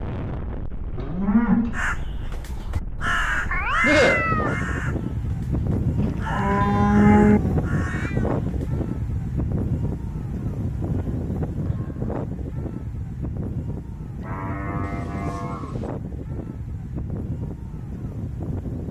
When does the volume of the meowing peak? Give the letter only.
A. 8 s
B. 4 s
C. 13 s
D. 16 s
B.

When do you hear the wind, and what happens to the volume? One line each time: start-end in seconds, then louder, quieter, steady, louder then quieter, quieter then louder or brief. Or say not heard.
0.0-18.8 louder then quieter.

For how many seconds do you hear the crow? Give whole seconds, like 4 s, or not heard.
7 s.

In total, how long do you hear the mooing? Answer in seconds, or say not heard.
4 s.